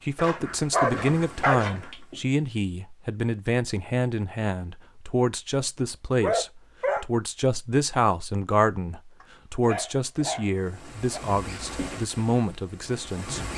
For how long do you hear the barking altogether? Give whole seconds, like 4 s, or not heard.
5 s.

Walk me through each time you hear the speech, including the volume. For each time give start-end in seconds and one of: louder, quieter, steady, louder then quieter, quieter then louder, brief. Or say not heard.
0.1-13.5 steady.